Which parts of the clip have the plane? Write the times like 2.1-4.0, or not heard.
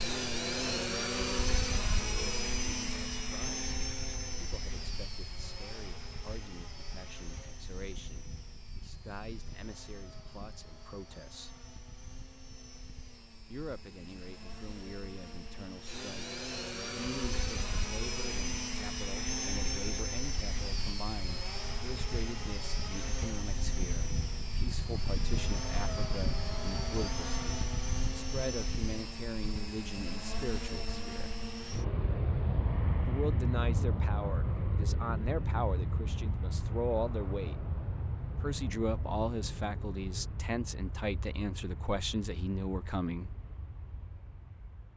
0.0-44.9.